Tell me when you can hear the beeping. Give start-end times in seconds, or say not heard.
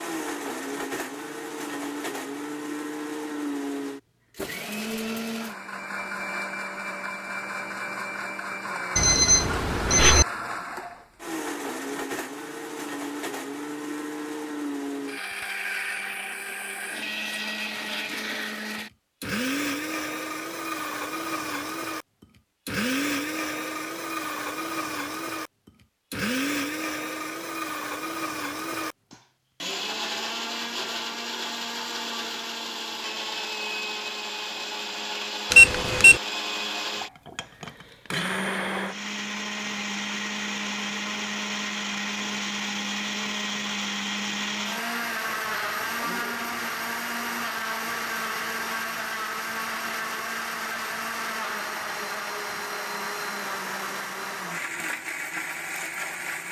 8.9-10.2, 35.5-36.2.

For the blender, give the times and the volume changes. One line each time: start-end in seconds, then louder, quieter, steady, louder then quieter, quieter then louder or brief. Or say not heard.
0.0-56.4 steady.